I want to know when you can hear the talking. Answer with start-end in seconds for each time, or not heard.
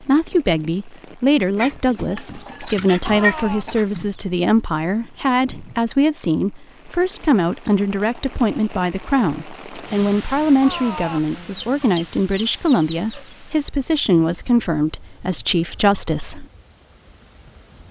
0.0-16.4.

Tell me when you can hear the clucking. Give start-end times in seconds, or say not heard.
1.6-4.2, 11.3-13.3.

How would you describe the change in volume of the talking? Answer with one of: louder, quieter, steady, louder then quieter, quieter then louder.
steady.